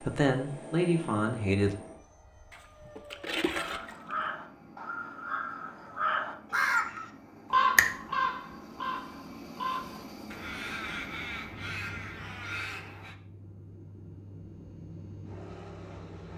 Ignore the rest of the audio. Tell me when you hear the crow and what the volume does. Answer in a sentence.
You can hear the crow from 3.5 to 13.2 s, getting louder then quieter.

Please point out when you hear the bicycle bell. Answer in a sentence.
The bicycle bell can't be heard in this clip.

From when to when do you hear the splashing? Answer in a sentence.
You can hear the splashing from 2.5 to 4.2 s.